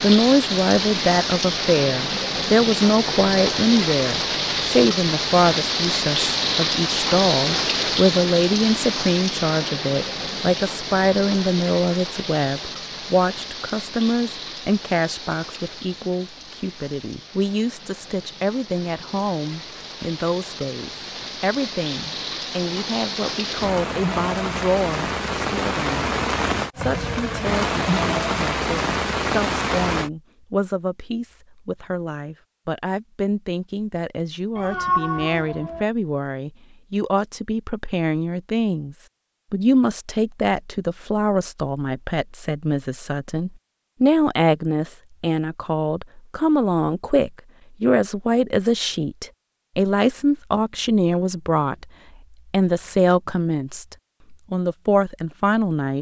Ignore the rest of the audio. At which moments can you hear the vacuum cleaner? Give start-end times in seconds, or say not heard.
not heard.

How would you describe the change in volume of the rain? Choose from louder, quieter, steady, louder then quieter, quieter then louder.
quieter then louder.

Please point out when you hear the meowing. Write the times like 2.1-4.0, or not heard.
34.5-35.9.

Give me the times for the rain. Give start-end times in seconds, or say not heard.
0.0-30.1.